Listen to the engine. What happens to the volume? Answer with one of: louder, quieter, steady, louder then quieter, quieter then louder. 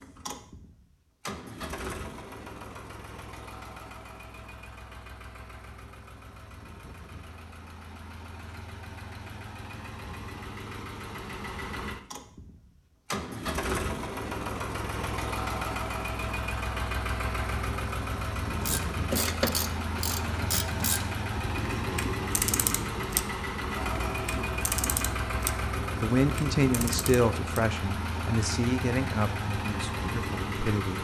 louder.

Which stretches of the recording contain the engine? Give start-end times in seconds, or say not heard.
0.0-30.9.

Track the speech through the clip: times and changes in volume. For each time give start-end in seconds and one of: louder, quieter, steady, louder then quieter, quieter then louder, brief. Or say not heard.
26.0-30.9 quieter.